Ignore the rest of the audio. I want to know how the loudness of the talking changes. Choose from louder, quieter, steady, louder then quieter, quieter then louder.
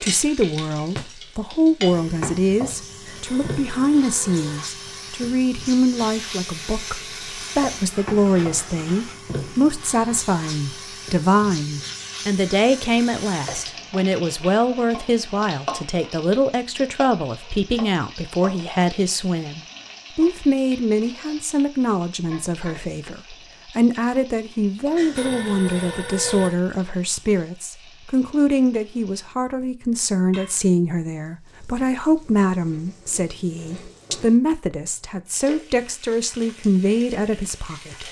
steady.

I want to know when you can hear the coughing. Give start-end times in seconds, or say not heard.
not heard.